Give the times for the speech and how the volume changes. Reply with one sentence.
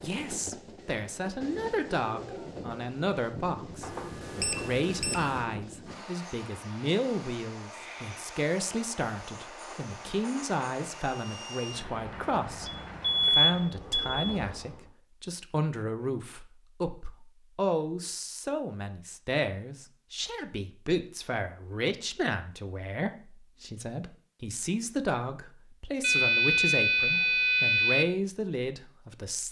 You can hear the speech from 0.0 to 29.4 s, at a steady volume.